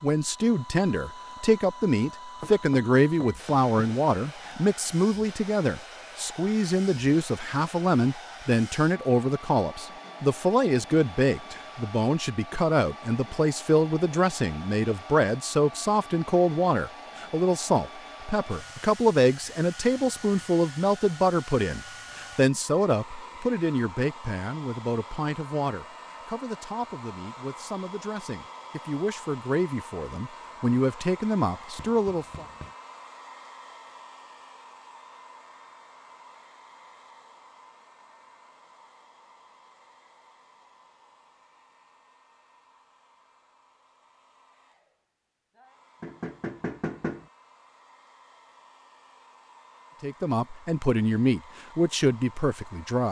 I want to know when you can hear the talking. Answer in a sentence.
The talking can be heard from 0.0 to 32.5 s and from 50.0 to 53.0 s.